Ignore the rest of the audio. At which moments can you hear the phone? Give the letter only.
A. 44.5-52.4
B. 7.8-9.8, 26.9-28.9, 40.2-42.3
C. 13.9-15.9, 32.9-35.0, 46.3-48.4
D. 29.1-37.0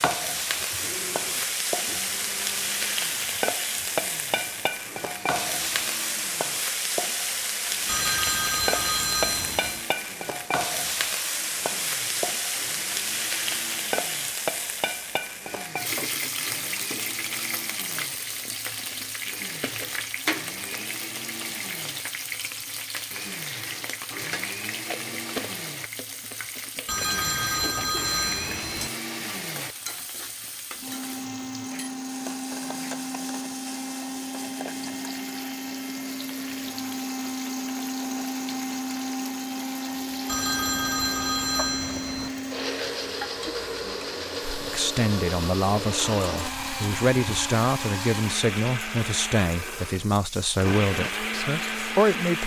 B.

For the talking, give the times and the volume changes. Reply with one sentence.
You can hear the talking from 44.5 to 52.4 s, at a steady volume.